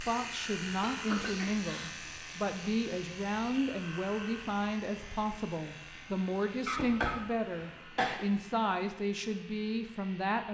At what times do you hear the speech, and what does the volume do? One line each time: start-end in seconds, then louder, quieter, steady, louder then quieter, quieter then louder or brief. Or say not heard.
0.0-10.4 steady.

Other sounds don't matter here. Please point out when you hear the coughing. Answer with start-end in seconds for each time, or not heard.
0.8-1.9, 6.7-8.2.